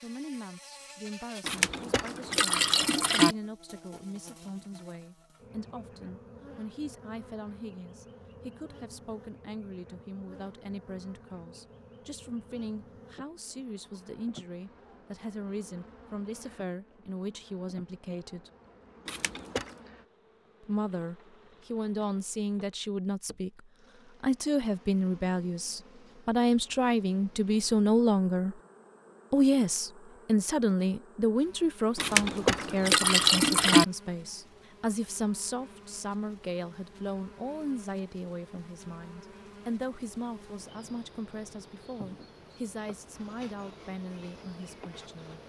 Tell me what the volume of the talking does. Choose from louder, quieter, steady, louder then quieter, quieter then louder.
louder then quieter.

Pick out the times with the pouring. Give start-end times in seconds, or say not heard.
1.4-3.4, 19.1-19.8, 31.9-33.9.